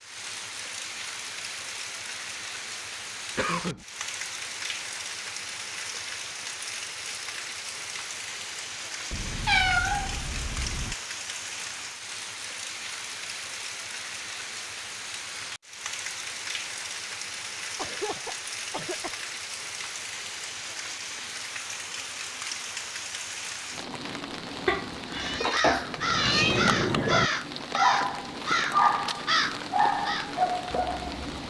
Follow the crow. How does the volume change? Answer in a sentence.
The loudness of the crow goes down.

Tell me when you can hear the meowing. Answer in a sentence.
You can hear the meowing from 9.1 to 10.9 s and from 24.6 to 26.6 s.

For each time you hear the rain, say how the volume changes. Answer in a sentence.
You can hear the rain from 0.0 to 31.4 s, at a steady volume.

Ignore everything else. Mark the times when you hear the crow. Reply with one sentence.
The crow can be heard from 25.1 to 31.3 s.